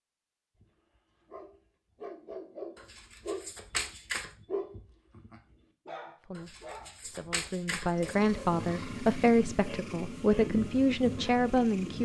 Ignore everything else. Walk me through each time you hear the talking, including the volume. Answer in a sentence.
The talking can be heard from 6.2 to 12.0 s, getting louder.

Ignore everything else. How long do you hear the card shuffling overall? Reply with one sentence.
You can hear the card shuffling for 3 seconds altogether.